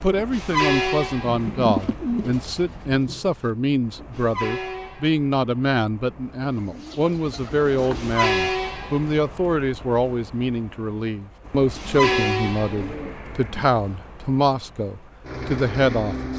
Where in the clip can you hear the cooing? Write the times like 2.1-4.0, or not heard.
1.2-3.4, 6.4-8.2, 11.7-13.7.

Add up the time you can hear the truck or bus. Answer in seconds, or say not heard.
16 s.